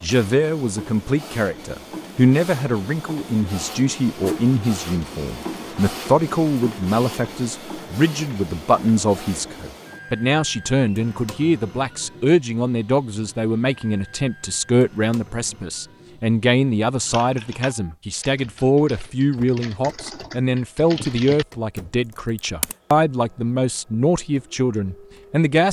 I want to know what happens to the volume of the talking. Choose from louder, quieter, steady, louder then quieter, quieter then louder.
steady.